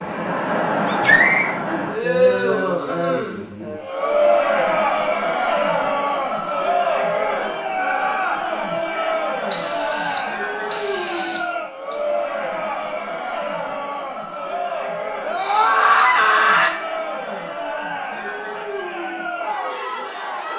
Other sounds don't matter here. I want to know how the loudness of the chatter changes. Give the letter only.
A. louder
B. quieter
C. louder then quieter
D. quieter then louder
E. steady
B.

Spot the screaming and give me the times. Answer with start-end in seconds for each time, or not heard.
0.8-1.6, 15.2-16.7.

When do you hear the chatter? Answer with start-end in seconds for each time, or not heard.
0.0-20.5.